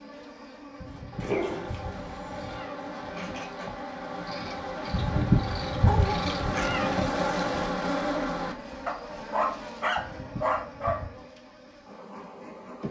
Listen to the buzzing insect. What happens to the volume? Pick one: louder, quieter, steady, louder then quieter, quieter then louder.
louder then quieter.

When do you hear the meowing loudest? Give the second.
5 s.